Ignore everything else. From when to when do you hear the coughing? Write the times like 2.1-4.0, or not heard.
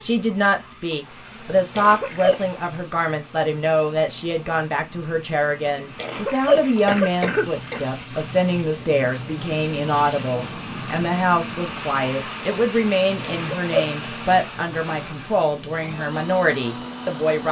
1.8-2.4, 6.0-7.8, 13.2-13.9.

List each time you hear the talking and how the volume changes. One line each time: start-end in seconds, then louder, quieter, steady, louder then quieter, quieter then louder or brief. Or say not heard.
0.0-17.4 steady.